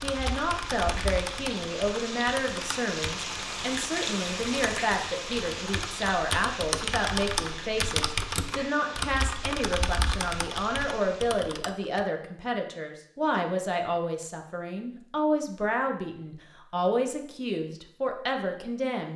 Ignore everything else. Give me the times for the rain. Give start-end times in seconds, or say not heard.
0.0-11.4.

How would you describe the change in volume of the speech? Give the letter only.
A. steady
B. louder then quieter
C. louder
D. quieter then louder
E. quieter
A.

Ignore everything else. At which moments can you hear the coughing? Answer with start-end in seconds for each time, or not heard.
not heard.